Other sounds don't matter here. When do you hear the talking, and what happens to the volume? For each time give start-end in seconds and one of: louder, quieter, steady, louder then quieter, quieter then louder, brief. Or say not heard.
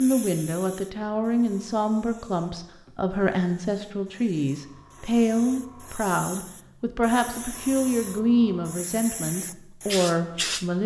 0.0-10.8 steady.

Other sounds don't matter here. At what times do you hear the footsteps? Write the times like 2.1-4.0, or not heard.
not heard.